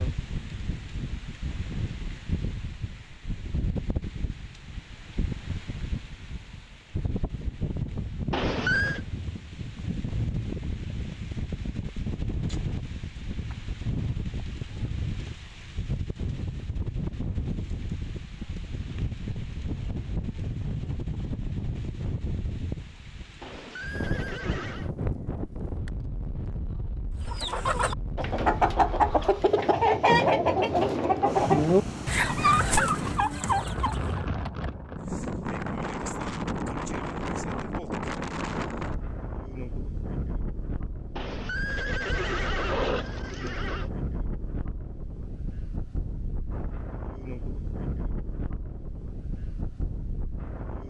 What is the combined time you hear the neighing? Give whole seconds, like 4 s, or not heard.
5 s.